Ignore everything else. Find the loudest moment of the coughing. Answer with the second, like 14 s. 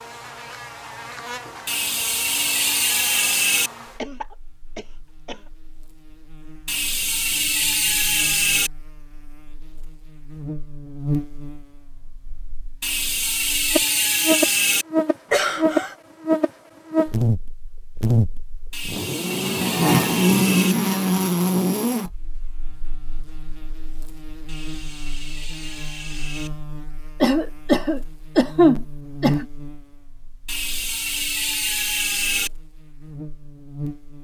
29 s.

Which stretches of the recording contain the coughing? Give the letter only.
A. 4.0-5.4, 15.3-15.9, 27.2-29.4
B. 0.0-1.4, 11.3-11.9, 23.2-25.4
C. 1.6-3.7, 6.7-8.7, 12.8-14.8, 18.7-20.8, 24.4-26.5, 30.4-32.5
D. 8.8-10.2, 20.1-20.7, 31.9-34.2
A.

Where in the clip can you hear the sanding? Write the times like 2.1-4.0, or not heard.
not heard.